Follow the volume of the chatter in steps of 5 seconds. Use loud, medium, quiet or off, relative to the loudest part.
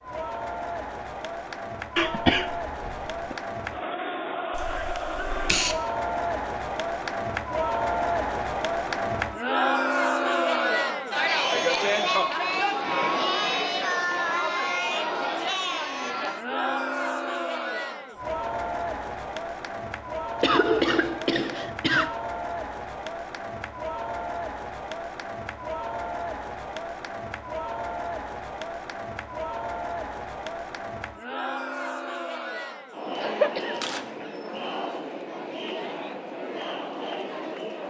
medium, loud, loud, medium, medium, medium, medium, medium.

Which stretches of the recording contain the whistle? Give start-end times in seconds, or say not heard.
not heard.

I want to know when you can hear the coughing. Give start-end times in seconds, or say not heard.
1.9-3.4, 20.4-22.1, 33.1-34.3.